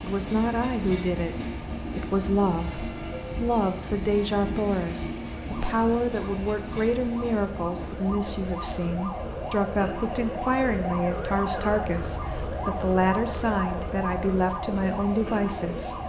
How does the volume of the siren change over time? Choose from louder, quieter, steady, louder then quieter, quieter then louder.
louder.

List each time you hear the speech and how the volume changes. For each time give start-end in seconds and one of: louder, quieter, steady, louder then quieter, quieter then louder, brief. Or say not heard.
0.0-15.9 steady.